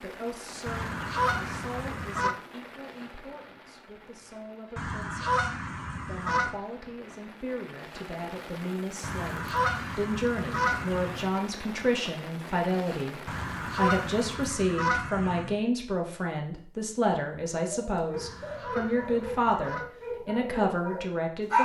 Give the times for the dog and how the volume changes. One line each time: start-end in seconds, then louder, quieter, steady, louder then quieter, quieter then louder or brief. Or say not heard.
17.5-21.5 steady.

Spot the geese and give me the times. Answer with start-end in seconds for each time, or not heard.
0.7-2.4, 4.8-6.5, 9.0-11.3, 13.2-15.6, 18.1-19.9.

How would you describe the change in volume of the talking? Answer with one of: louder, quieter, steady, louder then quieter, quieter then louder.
louder.